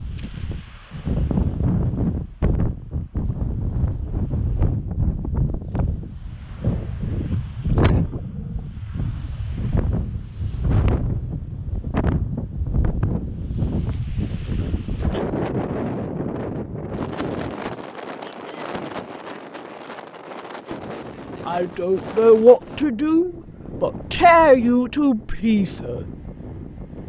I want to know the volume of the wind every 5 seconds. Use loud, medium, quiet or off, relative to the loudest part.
loud, loud, loud, loud, medium, medium.